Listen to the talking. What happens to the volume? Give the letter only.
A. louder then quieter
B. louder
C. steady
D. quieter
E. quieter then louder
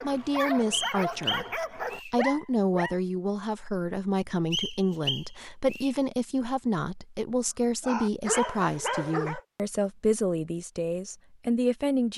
C.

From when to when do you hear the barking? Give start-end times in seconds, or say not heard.
0.0-3.0, 7.8-9.4.